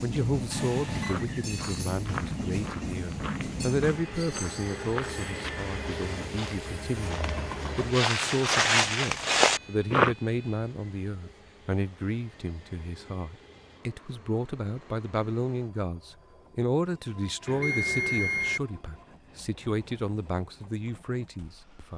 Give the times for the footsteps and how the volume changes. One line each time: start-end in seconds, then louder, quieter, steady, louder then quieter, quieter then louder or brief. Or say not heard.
1.1-10.2 louder.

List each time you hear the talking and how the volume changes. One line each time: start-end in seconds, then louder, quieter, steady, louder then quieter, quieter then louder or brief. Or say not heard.
0.0-21.9 steady.